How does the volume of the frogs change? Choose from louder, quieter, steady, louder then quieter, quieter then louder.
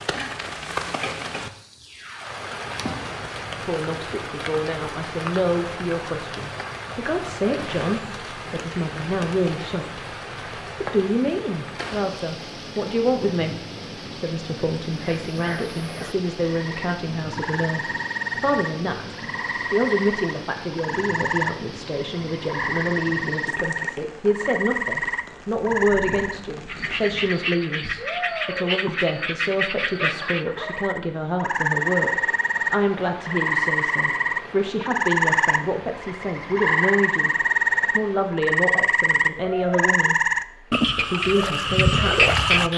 louder.